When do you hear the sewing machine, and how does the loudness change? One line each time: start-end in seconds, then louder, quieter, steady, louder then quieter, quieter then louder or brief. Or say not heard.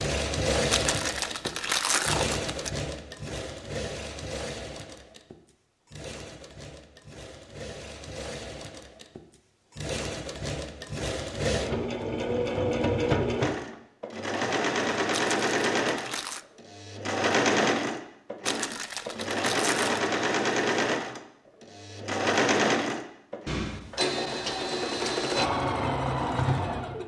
0.0-27.0 quieter then louder.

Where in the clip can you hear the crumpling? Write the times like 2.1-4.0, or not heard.
0.7-2.7, 15.1-16.4, 18.4-20.1.